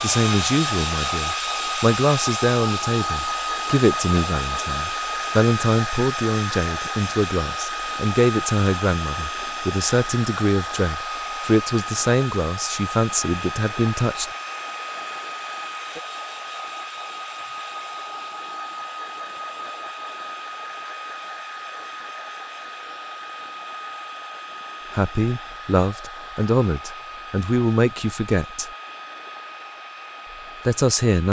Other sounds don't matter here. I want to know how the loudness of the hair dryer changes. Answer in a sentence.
The loudness of the hair dryer goes down.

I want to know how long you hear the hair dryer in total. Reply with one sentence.
You can hear the hair dryer for 31 seconds altogether.